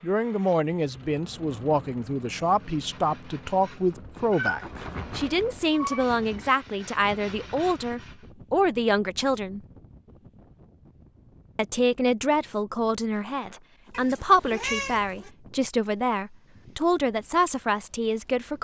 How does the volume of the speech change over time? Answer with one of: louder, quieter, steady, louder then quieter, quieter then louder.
steady.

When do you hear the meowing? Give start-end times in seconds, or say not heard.
4.3-6.0, 13.9-15.3.